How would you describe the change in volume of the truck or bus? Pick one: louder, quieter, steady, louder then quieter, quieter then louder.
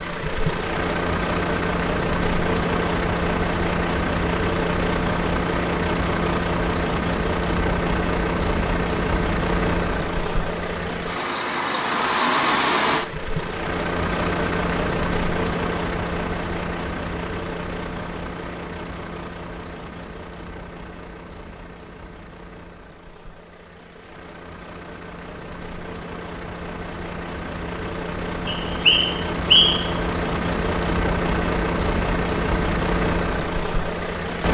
quieter then louder.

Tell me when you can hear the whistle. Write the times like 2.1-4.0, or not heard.
28.4-29.9.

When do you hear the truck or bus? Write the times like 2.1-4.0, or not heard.
0.0-34.4.